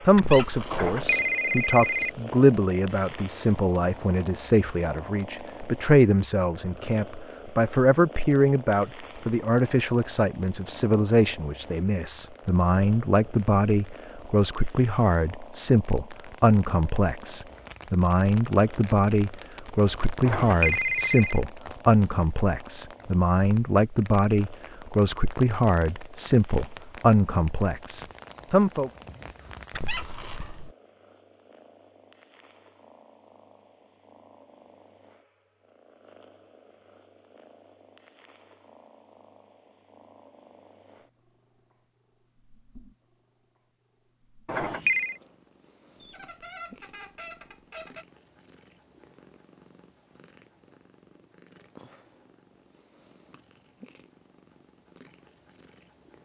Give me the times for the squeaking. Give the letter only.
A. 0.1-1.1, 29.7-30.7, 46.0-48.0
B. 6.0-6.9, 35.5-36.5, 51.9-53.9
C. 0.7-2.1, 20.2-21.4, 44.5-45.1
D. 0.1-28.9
A.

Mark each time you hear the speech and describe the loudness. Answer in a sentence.
You can hear the speech from 0.1 to 28.9 s, at a steady volume.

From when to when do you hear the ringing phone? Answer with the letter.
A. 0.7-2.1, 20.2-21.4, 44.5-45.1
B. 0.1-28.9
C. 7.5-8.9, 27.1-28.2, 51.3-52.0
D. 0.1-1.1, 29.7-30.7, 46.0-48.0
A.